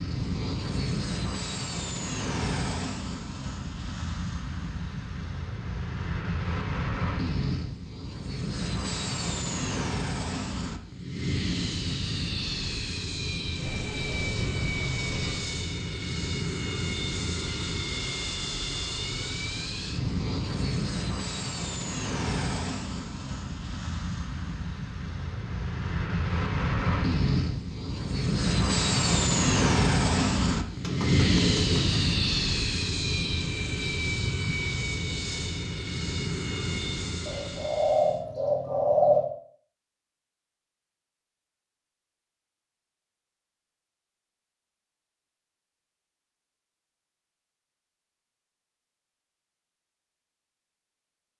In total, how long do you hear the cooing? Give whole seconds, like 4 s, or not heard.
5 s.